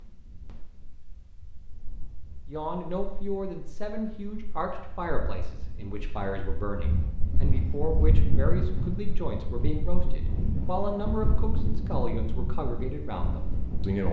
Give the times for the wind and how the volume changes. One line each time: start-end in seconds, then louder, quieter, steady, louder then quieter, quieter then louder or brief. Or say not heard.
0.0-14.0 louder.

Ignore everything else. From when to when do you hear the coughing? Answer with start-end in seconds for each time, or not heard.
not heard.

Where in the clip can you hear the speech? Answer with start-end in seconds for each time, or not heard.
2.5-14.0.